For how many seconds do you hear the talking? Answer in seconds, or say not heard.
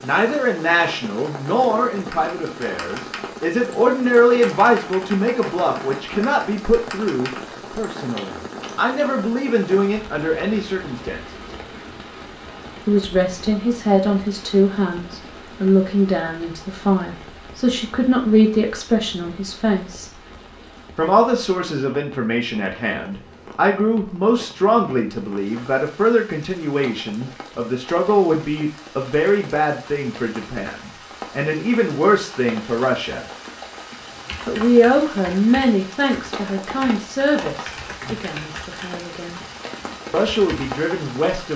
37 s.